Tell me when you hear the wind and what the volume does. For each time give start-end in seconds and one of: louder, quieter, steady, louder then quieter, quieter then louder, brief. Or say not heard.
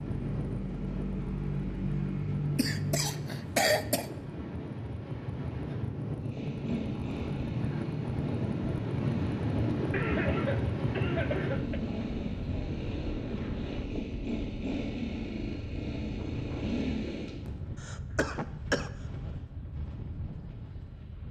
0.0-21.2 louder then quieter.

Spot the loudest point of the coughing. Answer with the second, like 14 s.
4 s.